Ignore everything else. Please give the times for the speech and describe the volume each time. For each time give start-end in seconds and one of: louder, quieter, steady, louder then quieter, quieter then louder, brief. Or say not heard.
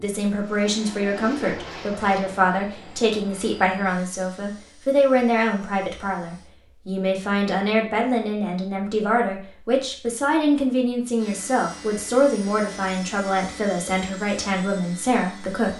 0.0-15.7 steady.